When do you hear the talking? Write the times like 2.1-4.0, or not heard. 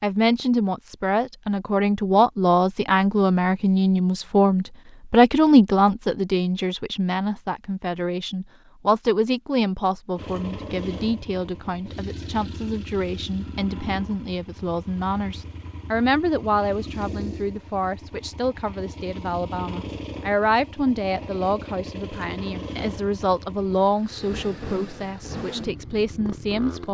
0.0-26.8.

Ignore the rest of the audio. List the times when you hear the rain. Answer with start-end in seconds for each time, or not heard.
not heard.